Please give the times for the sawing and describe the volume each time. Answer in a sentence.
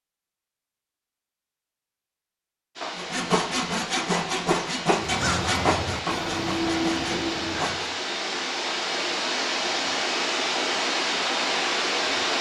The sawing can be heard from 3.0 to 7.9 s, getting quieter.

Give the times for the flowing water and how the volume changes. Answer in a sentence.
You can hear the flowing water from 2.8 to 12.3 s, getting louder.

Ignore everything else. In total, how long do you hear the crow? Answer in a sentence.
The crow can be heard for 3 seconds in total.